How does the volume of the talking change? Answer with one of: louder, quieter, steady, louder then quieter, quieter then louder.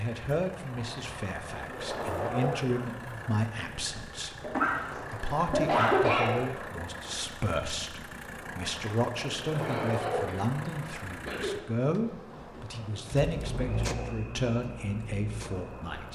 steady.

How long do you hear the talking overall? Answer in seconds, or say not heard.
16 s.